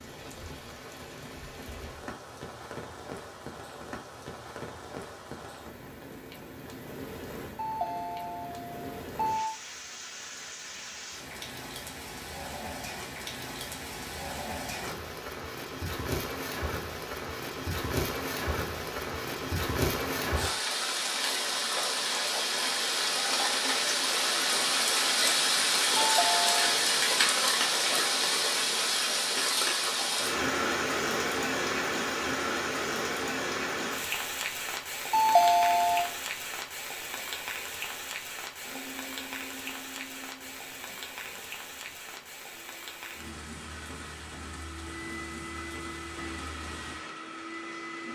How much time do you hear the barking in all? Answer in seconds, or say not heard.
not heard.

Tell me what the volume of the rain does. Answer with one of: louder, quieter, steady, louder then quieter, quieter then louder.
louder then quieter.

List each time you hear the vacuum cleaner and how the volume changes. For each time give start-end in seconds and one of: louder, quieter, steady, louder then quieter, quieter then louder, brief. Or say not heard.
38.6-48.1 quieter then louder.